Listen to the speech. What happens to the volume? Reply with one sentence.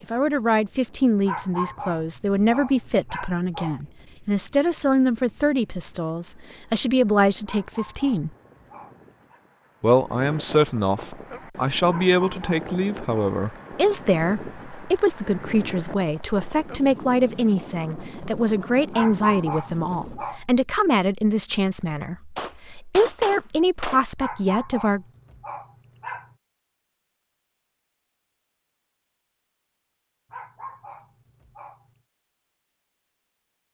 The loudness of the speech stays about the same.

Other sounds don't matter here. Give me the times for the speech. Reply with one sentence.
You can hear the speech from 0.0 to 8.3 s and from 9.8 to 25.1 s.